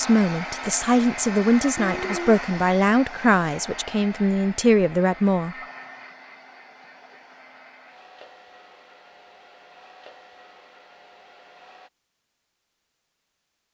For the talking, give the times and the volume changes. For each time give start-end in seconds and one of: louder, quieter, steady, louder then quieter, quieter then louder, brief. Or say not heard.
0.0-5.5 steady.